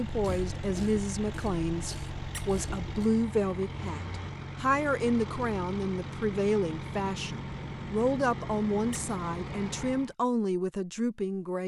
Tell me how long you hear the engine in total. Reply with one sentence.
The engine can be heard for 10 seconds in total.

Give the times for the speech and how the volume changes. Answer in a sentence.
You can hear the speech from 0.0 to 11.6 s, at a steady volume.